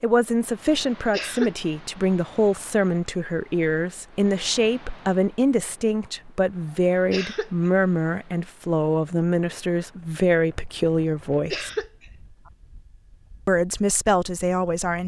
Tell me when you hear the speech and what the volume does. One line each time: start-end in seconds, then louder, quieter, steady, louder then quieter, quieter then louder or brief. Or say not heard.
0.0-11.7 steady
13.4-15.0 brief.